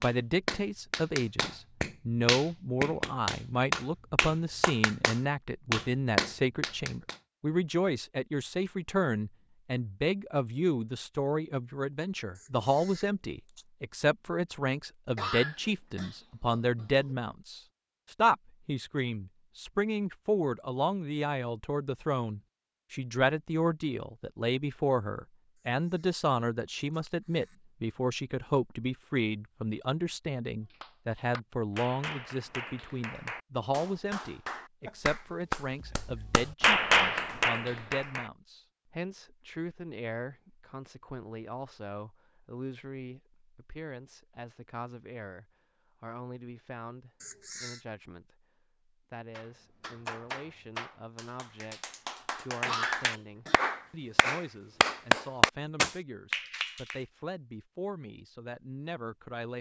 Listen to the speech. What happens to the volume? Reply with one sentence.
The volume of the speech goes down.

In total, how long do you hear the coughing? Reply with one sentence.
The coughing can be heard for 3 seconds in total.